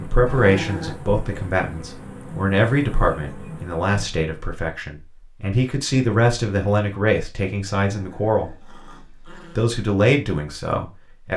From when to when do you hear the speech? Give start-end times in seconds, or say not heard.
0.0-8.6, 9.6-11.3.